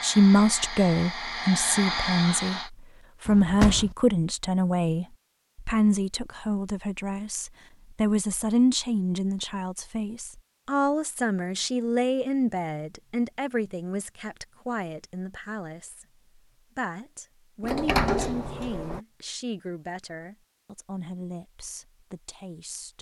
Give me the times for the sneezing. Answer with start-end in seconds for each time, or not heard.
not heard.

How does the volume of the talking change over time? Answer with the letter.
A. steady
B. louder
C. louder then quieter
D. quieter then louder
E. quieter
E.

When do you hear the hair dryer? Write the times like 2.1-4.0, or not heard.
0.0-2.7.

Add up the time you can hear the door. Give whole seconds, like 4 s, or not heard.
2 s.